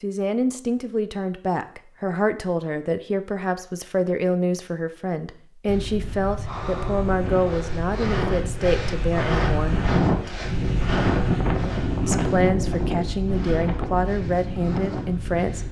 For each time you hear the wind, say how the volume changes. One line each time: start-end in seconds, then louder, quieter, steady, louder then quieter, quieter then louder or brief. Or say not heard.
5.7-15.6 louder then quieter.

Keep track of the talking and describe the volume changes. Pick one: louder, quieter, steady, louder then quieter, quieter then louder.
steady.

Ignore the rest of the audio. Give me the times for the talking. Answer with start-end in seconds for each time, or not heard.
0.0-9.8, 12.1-15.6.